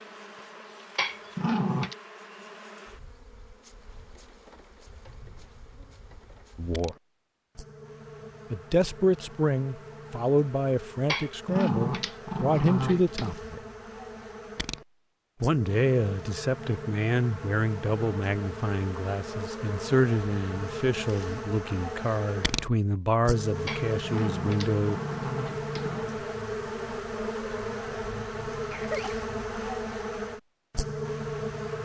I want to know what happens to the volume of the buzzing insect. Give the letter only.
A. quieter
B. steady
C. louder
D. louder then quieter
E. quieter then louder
C.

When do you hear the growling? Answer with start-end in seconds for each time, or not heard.
0.9-1.9, 11.1-13.4, 23.6-26.1.